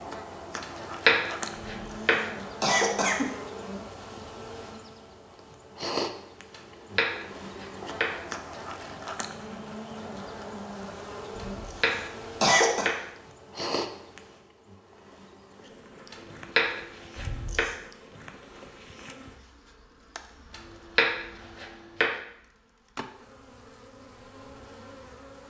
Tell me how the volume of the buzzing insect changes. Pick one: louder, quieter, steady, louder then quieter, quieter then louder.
quieter.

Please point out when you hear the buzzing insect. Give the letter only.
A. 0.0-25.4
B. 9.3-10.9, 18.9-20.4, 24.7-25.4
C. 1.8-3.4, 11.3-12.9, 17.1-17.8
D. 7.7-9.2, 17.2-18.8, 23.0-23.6
A.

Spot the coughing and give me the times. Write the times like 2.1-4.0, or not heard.
1.8-3.4, 11.3-12.9, 17.1-17.8.